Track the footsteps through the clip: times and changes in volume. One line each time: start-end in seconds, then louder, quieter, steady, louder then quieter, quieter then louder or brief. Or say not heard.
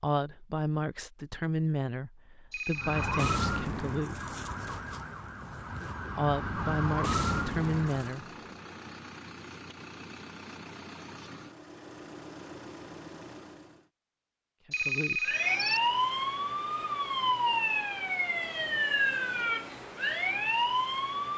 not heard.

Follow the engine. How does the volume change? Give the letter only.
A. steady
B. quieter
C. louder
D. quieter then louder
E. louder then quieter
A.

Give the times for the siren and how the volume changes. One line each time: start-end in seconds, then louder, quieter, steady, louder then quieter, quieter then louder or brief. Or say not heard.
2.8-8.2 quieter then louder
15.2-21.3 steady.